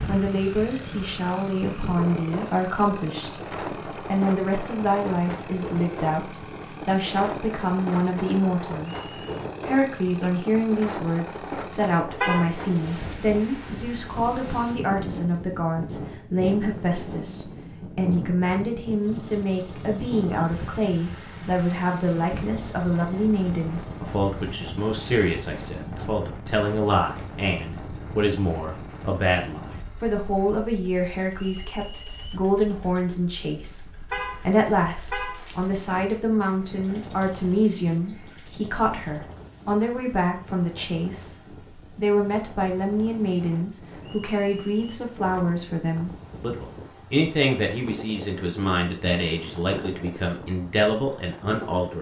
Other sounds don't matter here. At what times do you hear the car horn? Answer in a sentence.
The car horn can be heard from 12.2 to 13.2 s and from 34.1 to 35.9 s.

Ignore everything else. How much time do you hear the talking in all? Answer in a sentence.
You can hear the talking for 51 seconds altogether.